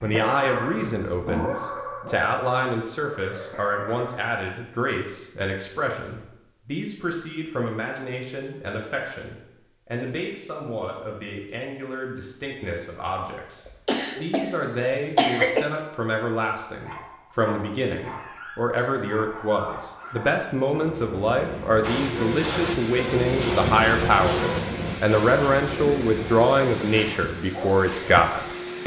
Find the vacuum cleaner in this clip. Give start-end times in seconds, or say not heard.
21.8-28.8.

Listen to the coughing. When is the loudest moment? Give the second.
15 s.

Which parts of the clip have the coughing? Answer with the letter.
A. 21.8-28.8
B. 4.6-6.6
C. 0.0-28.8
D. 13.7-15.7
D.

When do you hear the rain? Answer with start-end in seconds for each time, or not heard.
not heard.